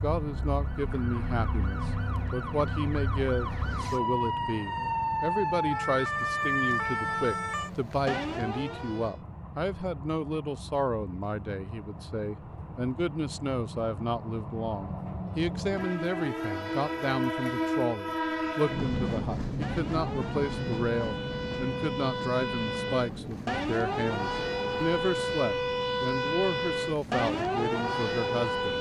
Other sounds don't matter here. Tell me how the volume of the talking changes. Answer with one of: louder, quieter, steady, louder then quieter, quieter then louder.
steady.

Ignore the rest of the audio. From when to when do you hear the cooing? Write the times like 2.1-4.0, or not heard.
not heard.